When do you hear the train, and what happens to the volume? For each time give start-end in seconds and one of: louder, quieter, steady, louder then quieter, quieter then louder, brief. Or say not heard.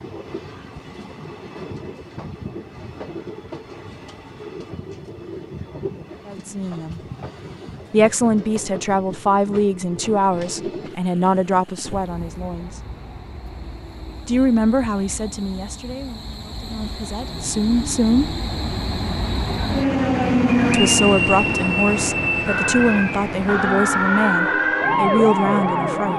0.0-26.1 louder.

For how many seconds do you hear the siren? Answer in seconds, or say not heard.
4 s.